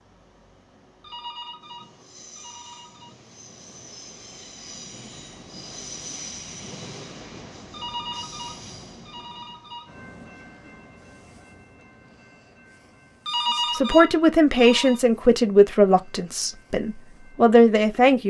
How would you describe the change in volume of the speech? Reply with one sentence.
The volume of the speech goes down, then up.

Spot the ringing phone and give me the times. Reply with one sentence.
The ringing phone can be heard from 1.0 to 3.1 s, from 7.7 to 9.9 s and from 13.2 to 15.0 s.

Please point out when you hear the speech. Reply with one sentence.
The speech can be heard from 13.7 to 18.2 s.